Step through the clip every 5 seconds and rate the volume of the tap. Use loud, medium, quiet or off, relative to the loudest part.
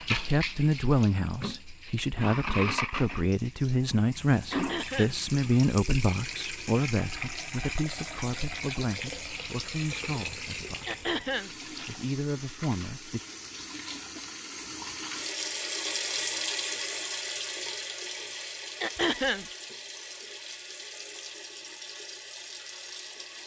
loud, loud, medium, loud, medium.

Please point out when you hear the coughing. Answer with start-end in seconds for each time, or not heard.
4.5-5.2, 10.8-11.5, 18.8-19.4.